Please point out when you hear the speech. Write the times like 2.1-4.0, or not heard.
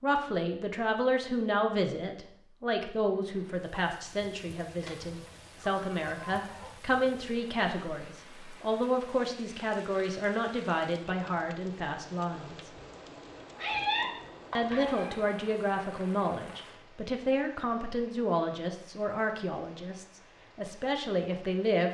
0.0-12.7, 14.6-21.8.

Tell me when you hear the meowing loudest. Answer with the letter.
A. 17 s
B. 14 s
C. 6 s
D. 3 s
B.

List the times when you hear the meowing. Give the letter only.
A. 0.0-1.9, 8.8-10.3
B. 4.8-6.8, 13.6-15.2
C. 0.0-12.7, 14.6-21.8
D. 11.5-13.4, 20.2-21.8
B.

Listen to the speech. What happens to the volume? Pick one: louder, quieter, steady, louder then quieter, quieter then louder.
steady.